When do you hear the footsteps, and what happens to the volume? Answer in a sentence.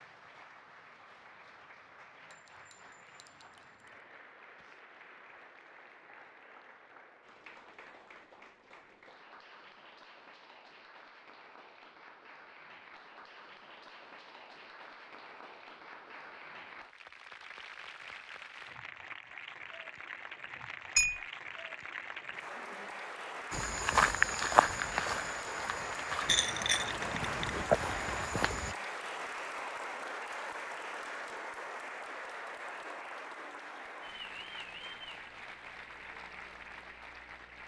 The footsteps can be heard from 23.5 to 28.8 s, getting quieter then louder.